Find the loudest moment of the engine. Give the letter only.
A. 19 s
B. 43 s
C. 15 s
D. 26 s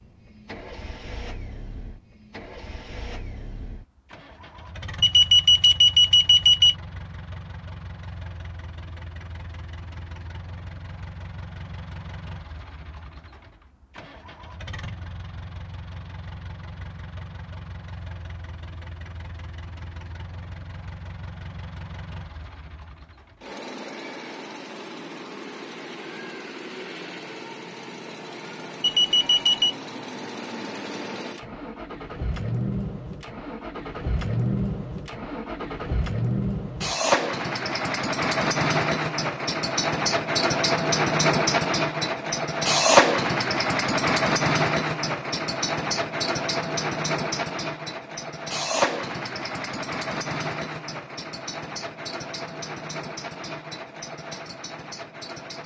B.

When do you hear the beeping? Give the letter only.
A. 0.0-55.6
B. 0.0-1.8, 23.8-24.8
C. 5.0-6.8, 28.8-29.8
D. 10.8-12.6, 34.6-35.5
C.